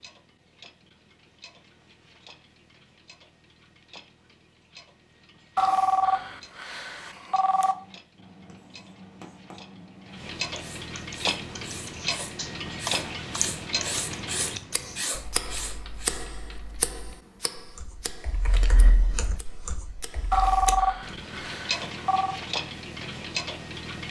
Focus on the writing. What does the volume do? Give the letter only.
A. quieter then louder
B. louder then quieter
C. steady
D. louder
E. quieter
D.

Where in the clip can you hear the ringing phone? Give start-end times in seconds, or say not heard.
5.5-7.8, 20.3-22.4.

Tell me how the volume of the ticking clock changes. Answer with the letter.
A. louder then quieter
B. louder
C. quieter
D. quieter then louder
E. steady
B.